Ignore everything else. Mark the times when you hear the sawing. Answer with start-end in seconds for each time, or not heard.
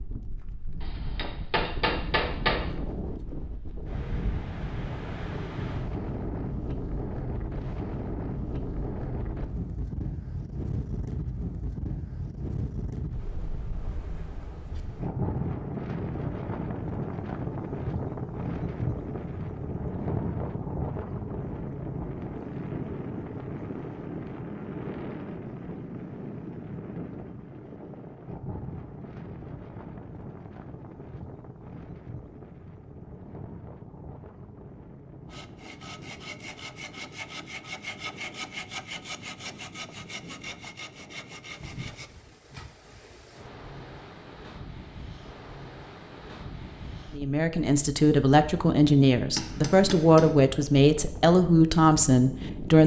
35.2-42.1.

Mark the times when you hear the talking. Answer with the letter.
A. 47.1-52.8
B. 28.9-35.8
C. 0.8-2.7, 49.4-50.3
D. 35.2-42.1
A.